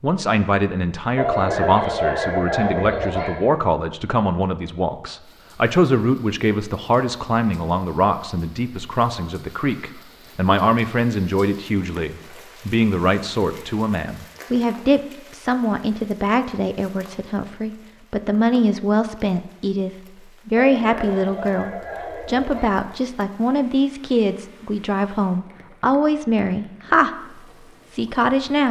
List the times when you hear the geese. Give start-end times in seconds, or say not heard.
1.1-3.5, 20.6-22.8.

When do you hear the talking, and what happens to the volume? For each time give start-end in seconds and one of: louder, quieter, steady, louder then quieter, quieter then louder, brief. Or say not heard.
0.0-27.1 steady
27.9-28.6 brief.